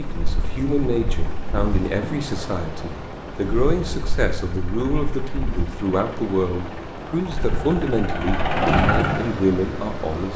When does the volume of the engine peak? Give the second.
9 s.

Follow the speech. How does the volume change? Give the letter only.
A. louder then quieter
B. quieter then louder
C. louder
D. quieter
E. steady
E.